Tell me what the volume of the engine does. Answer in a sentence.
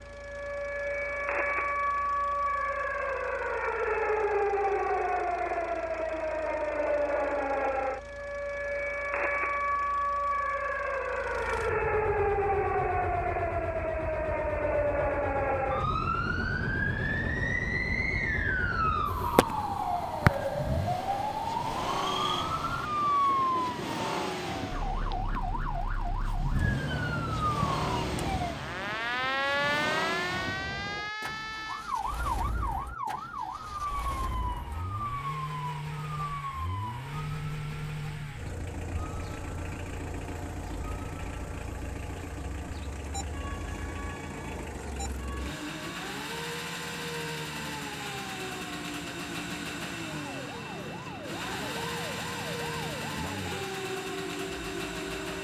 The volume of the engine goes up.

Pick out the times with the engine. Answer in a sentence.
You can hear the engine from 0.0 to 55.3 s.